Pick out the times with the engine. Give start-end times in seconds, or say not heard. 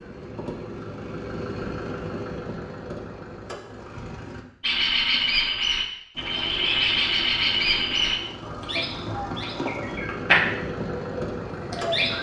0.0-4.5, 6.2-12.1.